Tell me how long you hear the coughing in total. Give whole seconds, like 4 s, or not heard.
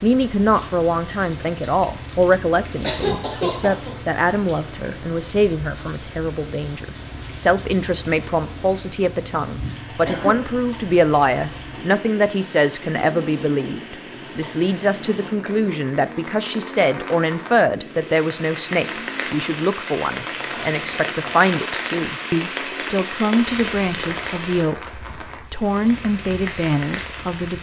3 s.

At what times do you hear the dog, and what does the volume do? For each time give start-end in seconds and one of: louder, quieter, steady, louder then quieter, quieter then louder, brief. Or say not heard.
not heard.